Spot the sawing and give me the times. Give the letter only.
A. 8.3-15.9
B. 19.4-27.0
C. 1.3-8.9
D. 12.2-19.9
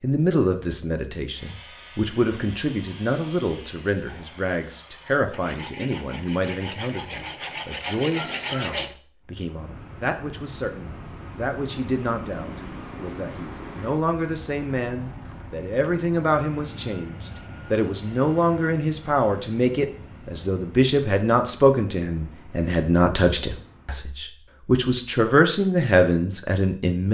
C.